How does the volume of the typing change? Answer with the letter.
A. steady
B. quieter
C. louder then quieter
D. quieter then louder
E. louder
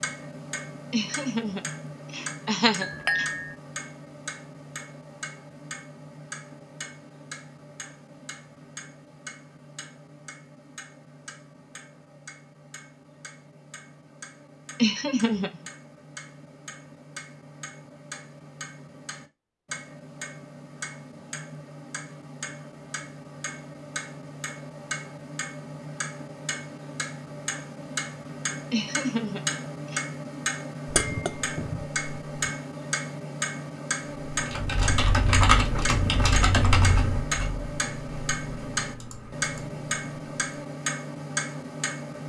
B.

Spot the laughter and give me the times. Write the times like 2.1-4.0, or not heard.
0.9-3.2, 14.8-15.7, 28.7-30.1.